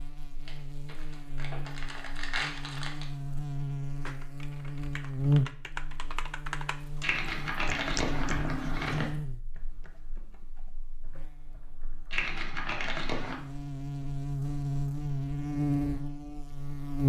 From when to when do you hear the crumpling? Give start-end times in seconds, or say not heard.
0.5-3.0, 7.0-9.1, 12.1-13.4.